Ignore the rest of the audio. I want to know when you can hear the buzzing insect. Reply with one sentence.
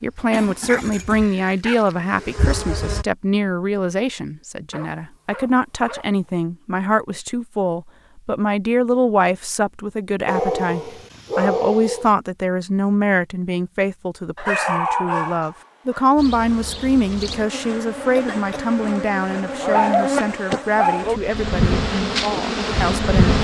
You can hear the buzzing insect from 0.0 to 3.0 s and from 16.1 to 23.3 s.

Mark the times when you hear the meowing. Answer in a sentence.
You can't hear the meowing here.